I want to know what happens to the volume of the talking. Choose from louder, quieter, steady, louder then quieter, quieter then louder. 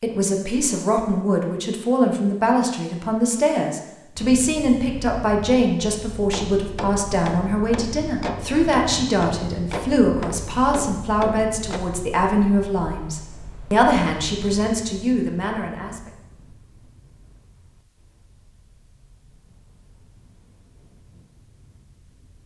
steady.